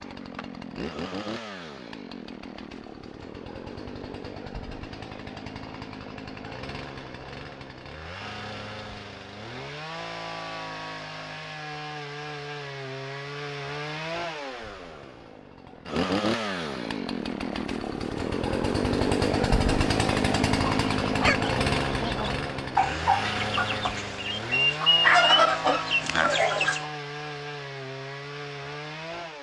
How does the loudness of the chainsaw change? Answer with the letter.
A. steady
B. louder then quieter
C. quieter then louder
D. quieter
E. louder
B.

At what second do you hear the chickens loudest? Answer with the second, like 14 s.
25 s.